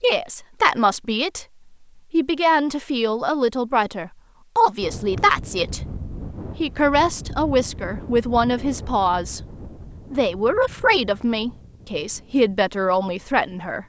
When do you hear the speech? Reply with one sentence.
The speech can be heard from 0.0 to 1.4 s, from 2.1 to 5.8 s, from 6.5 to 9.4 s and from 10.1 to 13.8 s.